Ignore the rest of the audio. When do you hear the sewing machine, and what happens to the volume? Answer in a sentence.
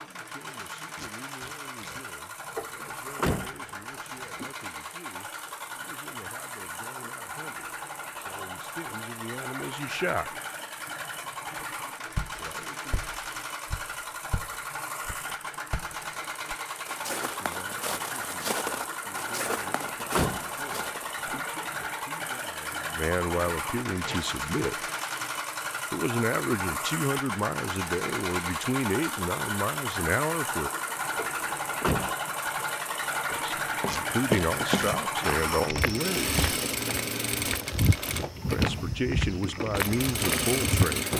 You can hear the sewing machine from 0.0 to 41.1 s, getting louder.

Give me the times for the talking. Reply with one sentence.
You can hear the talking from 0.0 to 10.3 s, from 12.3 to 12.9 s, from 17.1 to 24.9 s, from 25.9 to 30.7 s, from 33.3 to 36.4 s and from 38.5 to 41.1 s.